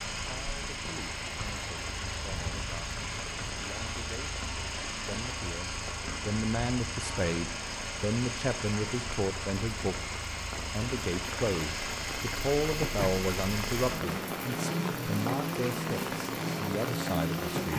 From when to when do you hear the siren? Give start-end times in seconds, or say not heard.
not heard.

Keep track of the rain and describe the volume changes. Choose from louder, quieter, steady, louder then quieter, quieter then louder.
louder.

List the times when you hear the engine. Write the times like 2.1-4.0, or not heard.
0.0-17.7.